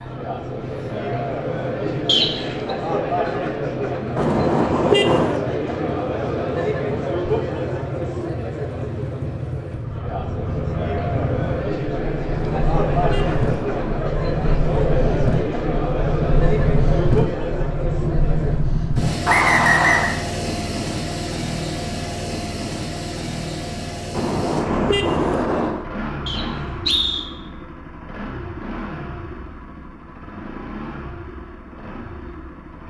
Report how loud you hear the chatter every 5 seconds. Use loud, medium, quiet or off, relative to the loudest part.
loud, loud, loud, loud, off, off, off.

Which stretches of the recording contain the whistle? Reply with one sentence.
You can hear the whistle from 2.0 to 2.5 s, from 19.2 to 20.1 s and from 26.2 to 27.2 s.